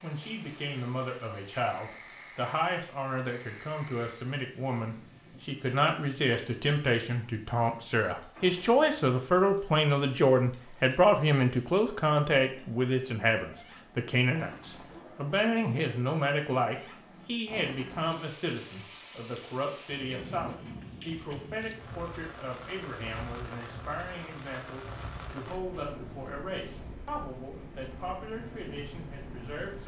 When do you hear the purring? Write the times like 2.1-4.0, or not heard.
not heard.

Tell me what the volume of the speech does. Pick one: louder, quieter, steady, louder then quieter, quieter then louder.
louder then quieter.